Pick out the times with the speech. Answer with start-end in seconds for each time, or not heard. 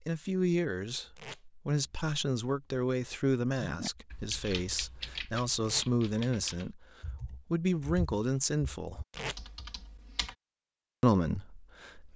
0.1-9.0, 11.0-12.1.